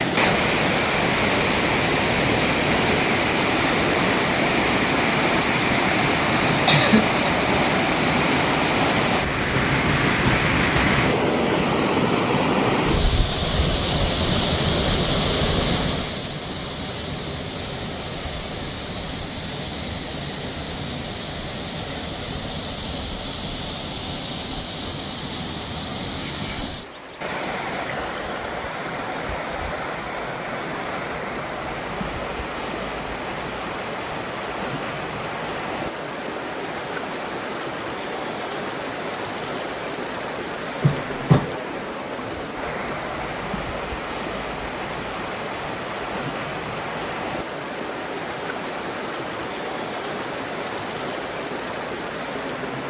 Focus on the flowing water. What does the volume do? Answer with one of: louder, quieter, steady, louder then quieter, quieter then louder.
quieter.